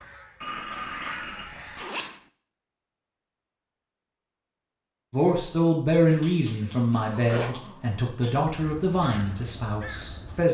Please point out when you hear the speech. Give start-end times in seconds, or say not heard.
5.1-10.5.